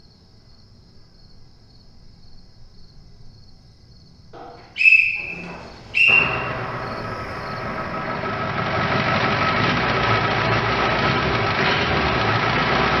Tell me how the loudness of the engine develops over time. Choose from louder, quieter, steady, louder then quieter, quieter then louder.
louder.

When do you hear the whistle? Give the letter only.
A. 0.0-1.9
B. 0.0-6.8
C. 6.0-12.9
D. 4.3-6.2
D.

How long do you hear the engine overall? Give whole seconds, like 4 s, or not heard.
7 s.